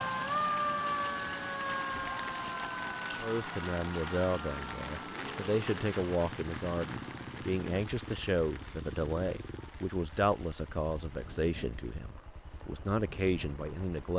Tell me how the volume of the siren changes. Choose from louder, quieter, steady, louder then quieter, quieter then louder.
quieter.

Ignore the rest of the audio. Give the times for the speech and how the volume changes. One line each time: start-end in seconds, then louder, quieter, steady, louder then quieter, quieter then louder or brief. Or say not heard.
3.2-14.1 steady.